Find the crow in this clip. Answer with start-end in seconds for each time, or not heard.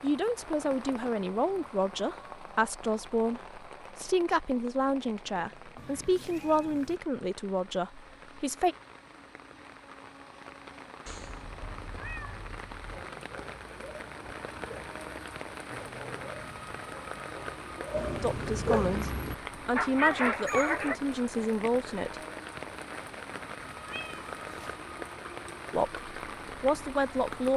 not heard.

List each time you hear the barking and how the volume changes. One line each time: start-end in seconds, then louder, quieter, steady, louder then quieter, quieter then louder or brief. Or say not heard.
12.8-20.9 louder.